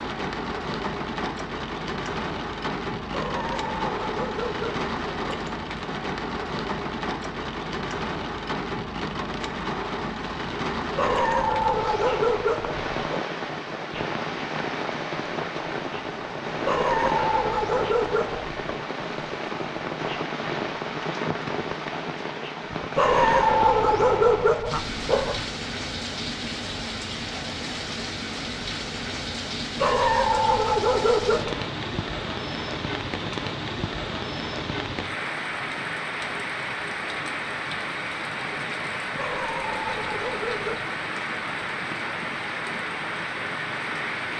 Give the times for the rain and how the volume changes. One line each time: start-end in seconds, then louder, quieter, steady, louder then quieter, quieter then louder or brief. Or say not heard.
0.0-44.3 steady.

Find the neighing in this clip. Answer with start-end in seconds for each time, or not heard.
not heard.